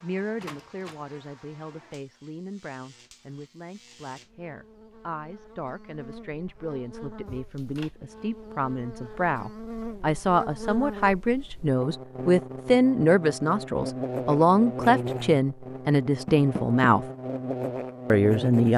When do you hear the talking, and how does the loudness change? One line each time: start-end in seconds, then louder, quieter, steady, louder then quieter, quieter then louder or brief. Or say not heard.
0.0-17.1 louder
18.1-18.7 brief.